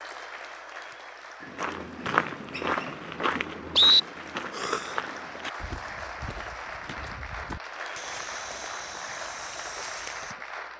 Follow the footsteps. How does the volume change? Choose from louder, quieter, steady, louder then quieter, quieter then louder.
quieter.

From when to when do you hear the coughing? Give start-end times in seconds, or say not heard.
4.5-5.0.